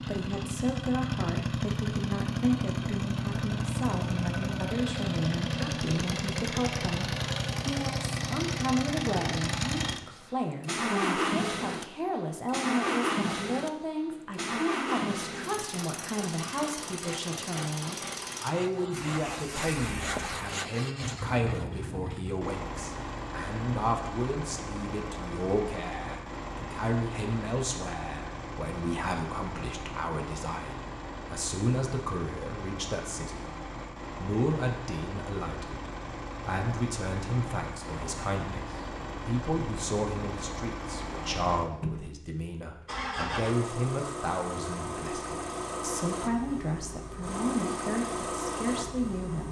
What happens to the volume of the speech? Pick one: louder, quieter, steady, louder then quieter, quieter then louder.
steady.